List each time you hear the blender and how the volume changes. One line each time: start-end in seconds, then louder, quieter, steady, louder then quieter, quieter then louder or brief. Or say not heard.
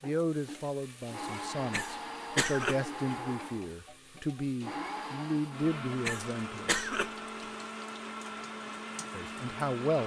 0.0-10.0 steady.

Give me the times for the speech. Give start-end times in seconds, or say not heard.
0.0-6.9, 9.1-10.0.